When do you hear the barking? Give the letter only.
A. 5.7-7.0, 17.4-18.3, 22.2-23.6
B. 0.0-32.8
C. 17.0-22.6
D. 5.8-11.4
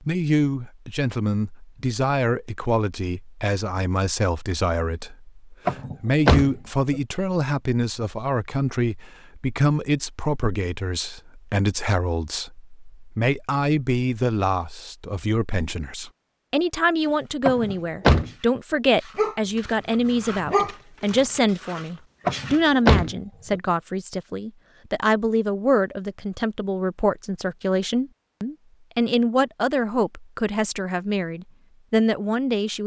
C.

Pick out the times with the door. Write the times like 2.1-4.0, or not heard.
5.7-7.0, 17.4-18.3, 22.2-23.6.